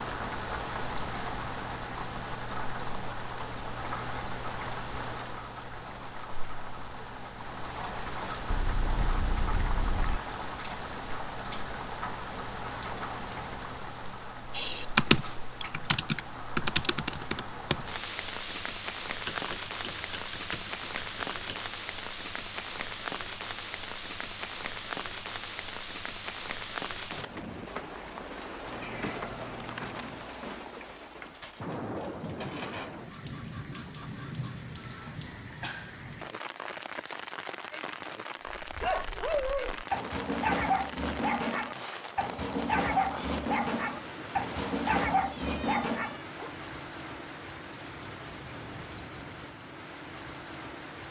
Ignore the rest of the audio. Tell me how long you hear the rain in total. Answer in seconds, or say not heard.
51 s.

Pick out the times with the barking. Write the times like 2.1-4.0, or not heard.
38.6-46.5.